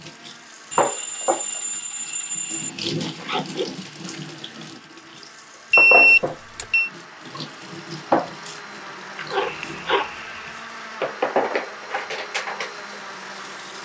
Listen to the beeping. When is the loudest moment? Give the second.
6 s.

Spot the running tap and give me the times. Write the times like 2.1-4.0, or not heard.
0.0-13.7.